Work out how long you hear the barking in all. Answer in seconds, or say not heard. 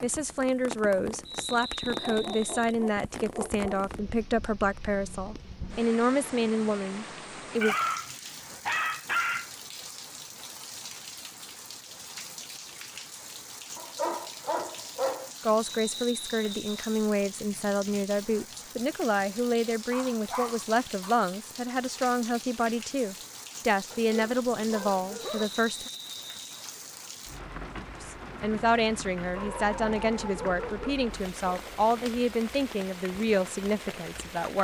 11 s.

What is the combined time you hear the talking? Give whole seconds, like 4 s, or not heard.
25 s.